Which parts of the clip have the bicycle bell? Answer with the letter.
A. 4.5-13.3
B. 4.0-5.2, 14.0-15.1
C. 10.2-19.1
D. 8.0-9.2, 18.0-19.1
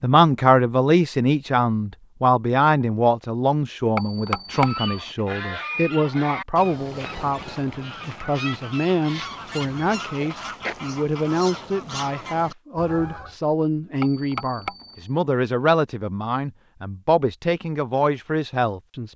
B.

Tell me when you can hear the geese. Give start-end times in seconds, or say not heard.
4.5-13.3.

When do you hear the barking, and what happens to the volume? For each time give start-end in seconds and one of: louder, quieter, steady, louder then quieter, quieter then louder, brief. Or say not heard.
not heard.